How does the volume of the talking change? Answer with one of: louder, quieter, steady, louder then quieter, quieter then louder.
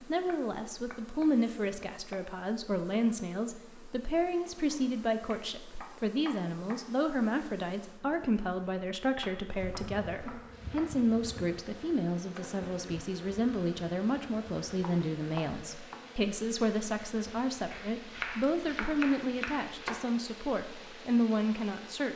steady.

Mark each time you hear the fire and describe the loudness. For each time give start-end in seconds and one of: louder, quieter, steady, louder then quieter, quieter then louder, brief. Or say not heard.
not heard.